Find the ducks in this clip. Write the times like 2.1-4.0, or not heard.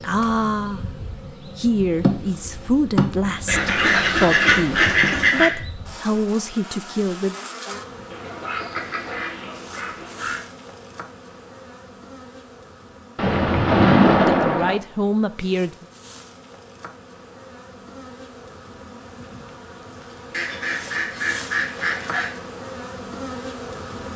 3.5-5.5, 8.1-10.4, 20.3-22.4.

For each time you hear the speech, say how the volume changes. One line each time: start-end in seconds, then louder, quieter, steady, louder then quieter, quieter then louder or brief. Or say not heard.
0.0-7.3 steady
14.2-15.8 brief.